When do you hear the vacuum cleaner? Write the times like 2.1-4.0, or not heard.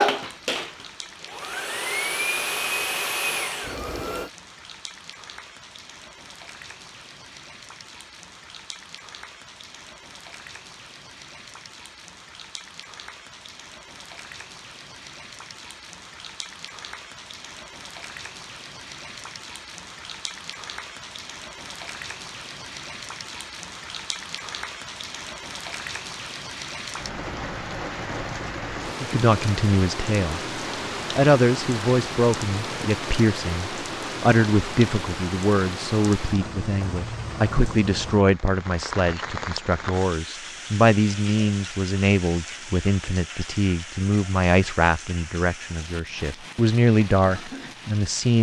0.0-4.3.